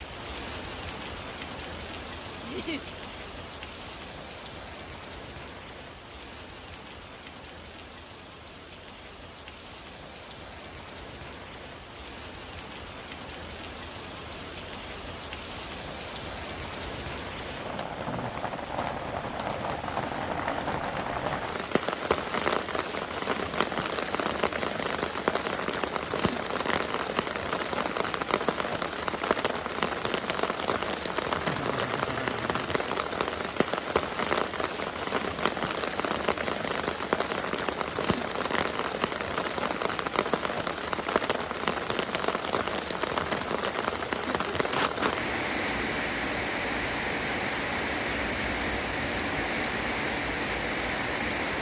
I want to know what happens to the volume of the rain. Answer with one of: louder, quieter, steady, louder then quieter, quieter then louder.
louder.